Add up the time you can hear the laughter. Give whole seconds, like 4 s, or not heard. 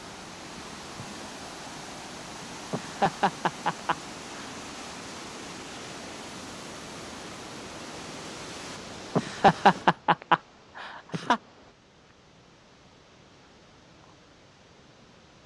4 s.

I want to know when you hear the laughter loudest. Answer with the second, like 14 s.
10 s.